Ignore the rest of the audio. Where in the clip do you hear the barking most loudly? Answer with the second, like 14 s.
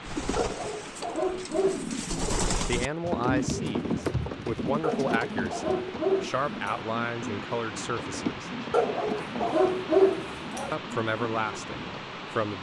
10 s.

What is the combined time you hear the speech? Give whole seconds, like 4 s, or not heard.
8 s.